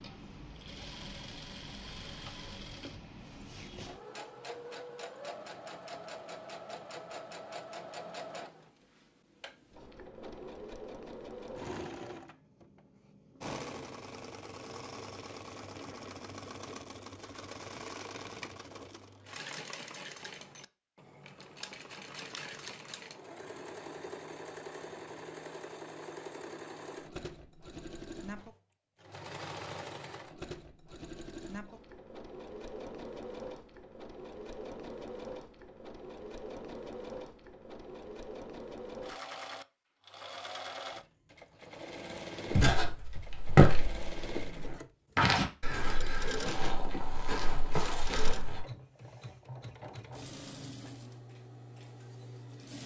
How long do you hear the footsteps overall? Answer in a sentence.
You can hear the footsteps for 6 seconds altogether.